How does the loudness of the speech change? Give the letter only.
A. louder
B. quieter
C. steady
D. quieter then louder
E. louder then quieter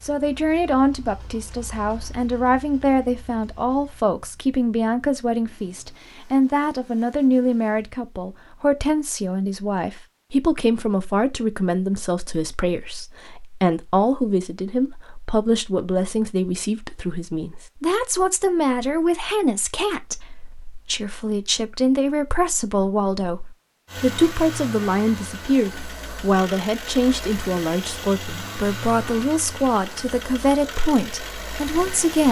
C.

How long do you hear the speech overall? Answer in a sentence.
The speech can be heard for 32 seconds in total.